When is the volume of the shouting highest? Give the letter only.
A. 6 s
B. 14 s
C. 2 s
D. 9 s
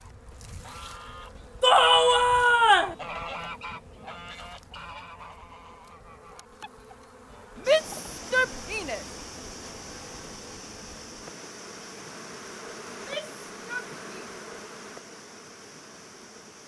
C.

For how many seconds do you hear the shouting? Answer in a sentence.
The shouting can be heard for 4 seconds in total.